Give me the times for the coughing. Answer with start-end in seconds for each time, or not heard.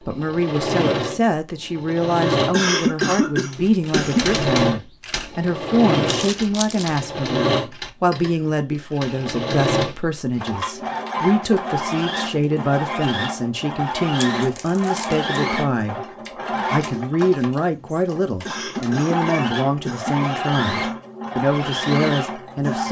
2.5-4.5, 18.4-20.1.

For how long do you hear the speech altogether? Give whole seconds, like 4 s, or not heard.
22 s.